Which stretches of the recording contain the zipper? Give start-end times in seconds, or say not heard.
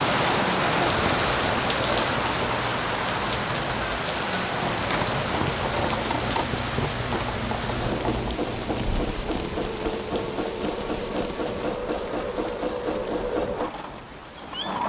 not heard.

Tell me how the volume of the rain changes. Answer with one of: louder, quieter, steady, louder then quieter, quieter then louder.
quieter.